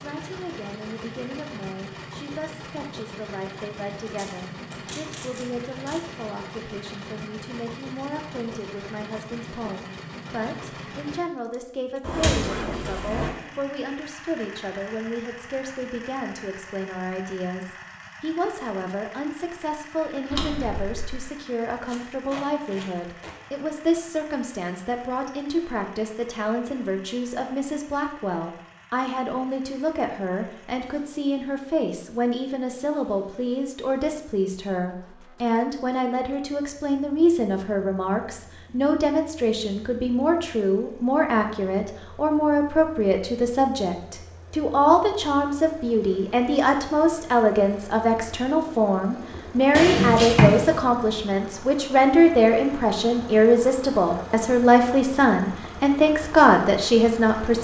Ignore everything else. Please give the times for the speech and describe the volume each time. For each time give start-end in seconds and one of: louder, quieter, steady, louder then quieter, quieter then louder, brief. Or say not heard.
0.0-57.5 louder.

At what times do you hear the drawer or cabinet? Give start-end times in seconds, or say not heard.
12.0-13.3, 20.3-21.2, 49.8-50.8.